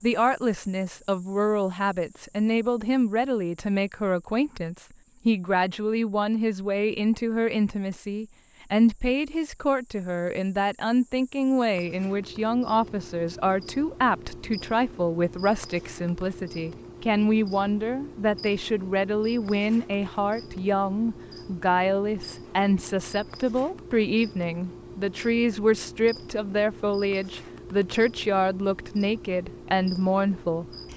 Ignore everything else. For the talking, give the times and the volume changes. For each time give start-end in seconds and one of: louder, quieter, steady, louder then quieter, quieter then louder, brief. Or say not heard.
0.0-30.6 steady.